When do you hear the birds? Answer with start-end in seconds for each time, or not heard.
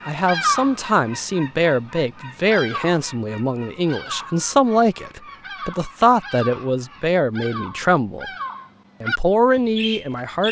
0.0-10.4.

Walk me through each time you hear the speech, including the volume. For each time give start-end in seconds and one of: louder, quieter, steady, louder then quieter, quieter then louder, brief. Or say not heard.
0.1-8.2 steady
9.0-10.4 brief.